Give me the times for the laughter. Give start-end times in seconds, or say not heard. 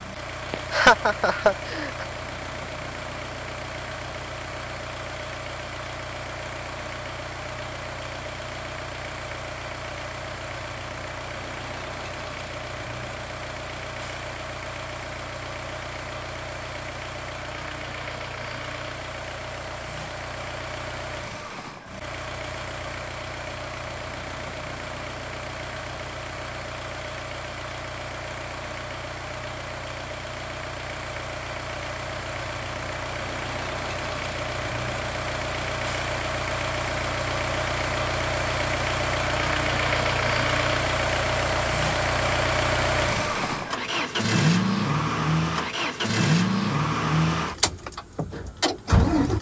0.5-2.0.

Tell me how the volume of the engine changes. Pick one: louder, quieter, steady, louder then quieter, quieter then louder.
louder.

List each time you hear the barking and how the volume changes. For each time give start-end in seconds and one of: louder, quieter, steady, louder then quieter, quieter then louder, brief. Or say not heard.
not heard.